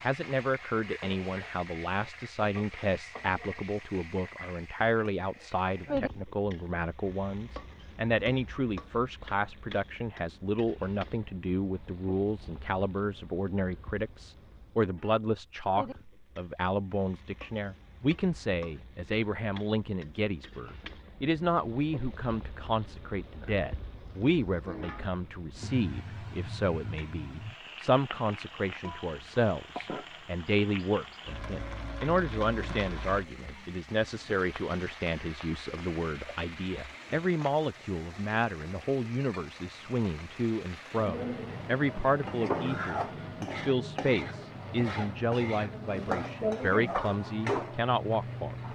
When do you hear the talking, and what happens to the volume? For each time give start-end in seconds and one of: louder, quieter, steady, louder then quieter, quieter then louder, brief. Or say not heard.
0.0-48.6 steady.